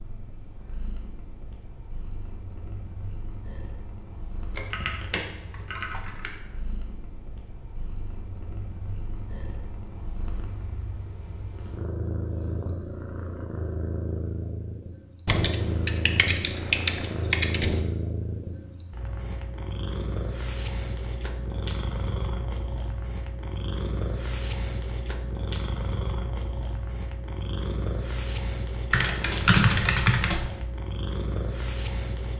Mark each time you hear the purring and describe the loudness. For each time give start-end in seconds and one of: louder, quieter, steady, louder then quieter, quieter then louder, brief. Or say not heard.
0.0-32.3 louder.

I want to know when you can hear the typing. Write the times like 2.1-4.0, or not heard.
4.5-6.3, 15.2-17.9, 28.9-30.5.